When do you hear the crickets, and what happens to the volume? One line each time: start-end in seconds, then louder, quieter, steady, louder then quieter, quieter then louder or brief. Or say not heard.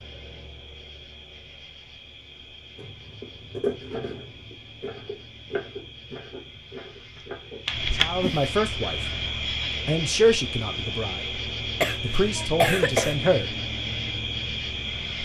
0.0-15.2 louder.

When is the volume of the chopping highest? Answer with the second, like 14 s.
4 s.